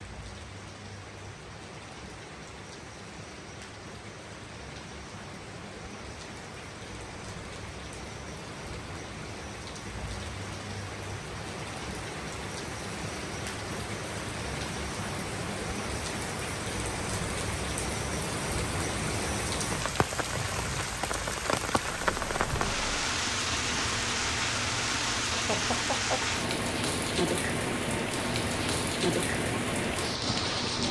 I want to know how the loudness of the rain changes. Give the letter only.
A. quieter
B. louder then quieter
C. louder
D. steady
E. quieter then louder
C.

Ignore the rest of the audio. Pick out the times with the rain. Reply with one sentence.
The rain can be heard from 0.0 to 30.8 s.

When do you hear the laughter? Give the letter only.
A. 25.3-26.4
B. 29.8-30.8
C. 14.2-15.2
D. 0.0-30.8
A.